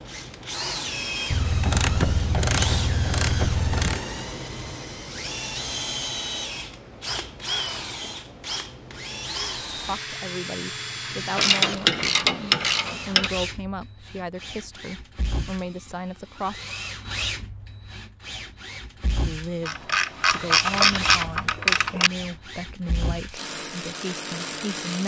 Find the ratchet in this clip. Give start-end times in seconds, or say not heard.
1.3-4.0, 11.3-13.3, 19.6-22.1.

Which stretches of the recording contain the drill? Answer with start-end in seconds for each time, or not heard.
0.0-25.0.